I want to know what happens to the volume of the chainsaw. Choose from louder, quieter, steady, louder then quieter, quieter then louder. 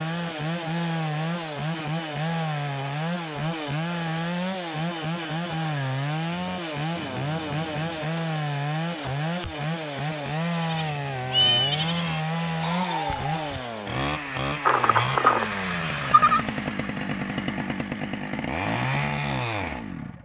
steady.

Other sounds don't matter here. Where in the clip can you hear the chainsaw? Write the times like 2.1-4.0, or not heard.
0.0-20.2.